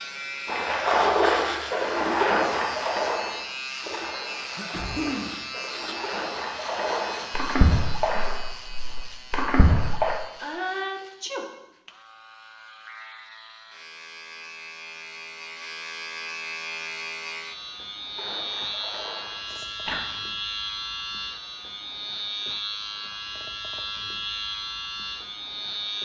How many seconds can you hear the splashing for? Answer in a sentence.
The splashing can be heard for 12 seconds in total.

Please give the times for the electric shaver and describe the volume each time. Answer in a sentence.
The electric shaver can be heard from 0.0 to 26.0 s, getting quieter then louder.